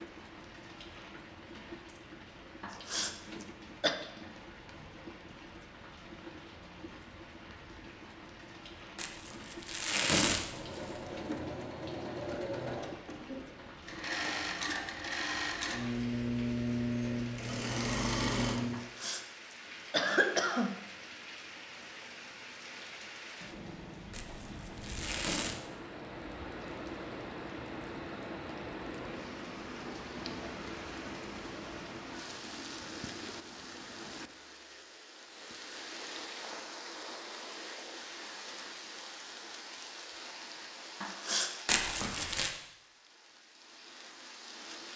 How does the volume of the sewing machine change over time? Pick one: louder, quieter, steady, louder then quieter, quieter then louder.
louder.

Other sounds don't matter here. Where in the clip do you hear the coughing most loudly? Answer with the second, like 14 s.
20 s.